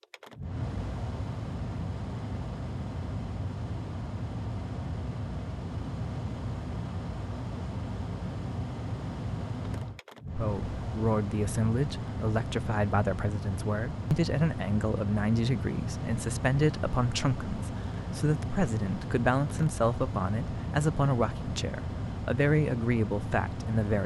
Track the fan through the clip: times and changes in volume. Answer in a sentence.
The fan can be heard from 0.0 to 24.0 s, at a steady volume.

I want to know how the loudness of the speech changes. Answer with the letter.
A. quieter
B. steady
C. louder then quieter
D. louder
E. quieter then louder
B.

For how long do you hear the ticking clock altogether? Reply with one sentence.
You can't hear the ticking clock here.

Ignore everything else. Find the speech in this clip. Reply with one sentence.
You can hear the speech from 10.3 to 24.0 s.